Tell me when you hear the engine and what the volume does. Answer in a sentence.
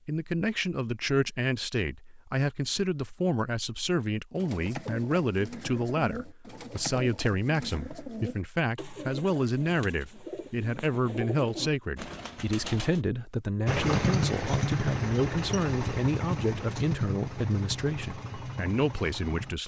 You can hear the engine from 13.7 to 19.6 s, getting quieter.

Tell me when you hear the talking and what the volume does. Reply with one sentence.
You can hear the talking from 0.1 to 19.6 s, at a steady volume.